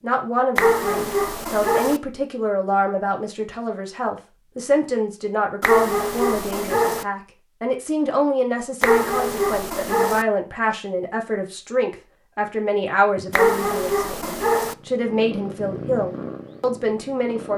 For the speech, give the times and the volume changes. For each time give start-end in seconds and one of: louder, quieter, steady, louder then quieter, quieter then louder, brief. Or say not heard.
0.0-17.5 steady.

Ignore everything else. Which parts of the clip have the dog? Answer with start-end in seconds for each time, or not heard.
0.6-2.0, 5.6-7.0, 8.8-10.2, 13.3-14.8.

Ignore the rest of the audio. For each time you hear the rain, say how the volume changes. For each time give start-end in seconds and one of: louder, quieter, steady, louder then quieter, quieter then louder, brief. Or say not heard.
not heard.